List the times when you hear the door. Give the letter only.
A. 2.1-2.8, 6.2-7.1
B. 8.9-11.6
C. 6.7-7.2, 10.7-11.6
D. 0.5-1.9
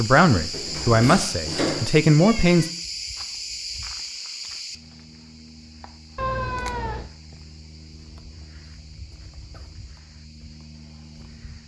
D.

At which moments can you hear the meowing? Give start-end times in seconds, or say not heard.
2.1-2.8, 6.2-7.1.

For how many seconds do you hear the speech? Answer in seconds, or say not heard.
3 s.